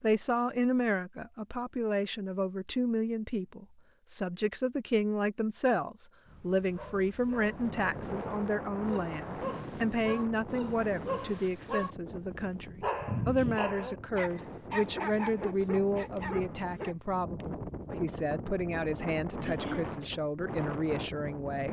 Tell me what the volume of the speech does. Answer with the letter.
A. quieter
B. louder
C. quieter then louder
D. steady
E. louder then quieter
D.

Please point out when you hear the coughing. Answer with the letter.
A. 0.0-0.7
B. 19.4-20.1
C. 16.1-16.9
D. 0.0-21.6
B.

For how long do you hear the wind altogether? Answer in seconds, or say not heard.
14 s.